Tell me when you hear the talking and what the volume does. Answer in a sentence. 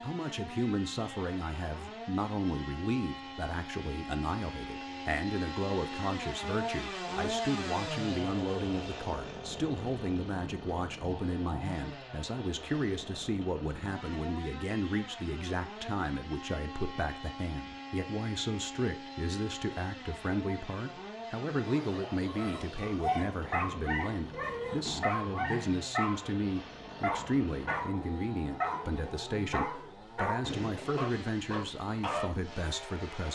The talking can be heard from 0.0 to 33.3 s, at a steady volume.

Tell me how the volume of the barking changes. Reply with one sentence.
The volume of the barking stays about the same.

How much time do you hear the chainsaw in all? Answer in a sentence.
You can hear the chainsaw for 33 seconds altogether.